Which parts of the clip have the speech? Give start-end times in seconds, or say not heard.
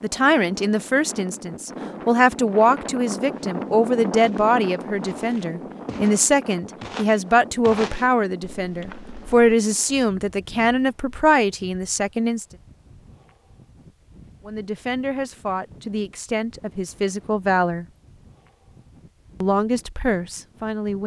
0.0-12.4, 14.4-17.9, 19.4-21.0.